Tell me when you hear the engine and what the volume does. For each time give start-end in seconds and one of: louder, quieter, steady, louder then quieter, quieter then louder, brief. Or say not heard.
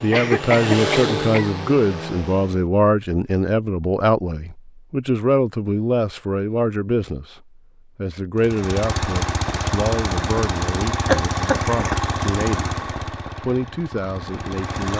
0.0-2.6 brief
8.3-14.9 quieter.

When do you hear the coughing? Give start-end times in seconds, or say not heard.
0.1-1.5, 11.1-11.9.